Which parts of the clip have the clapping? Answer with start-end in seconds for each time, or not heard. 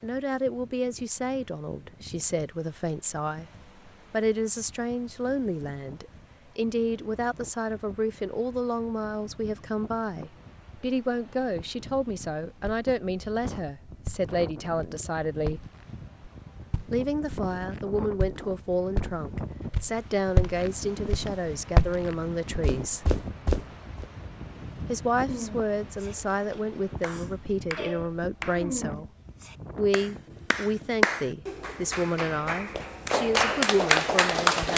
25.2-34.7.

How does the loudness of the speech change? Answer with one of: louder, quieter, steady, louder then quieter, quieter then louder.
steady.